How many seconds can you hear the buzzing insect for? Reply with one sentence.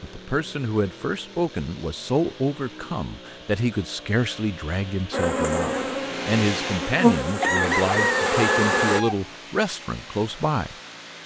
The buzzing insect can be heard for 4 seconds in total.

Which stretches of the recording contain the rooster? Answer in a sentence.
You can hear the rooster from 7.4 to 9.2 s.